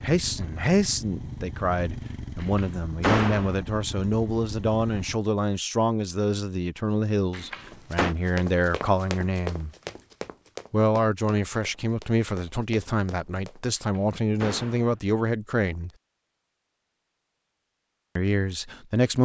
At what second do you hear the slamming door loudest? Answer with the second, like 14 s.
3 s.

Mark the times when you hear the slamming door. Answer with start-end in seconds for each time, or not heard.
2.4-3.5, 7.3-8.2, 13.8-14.9.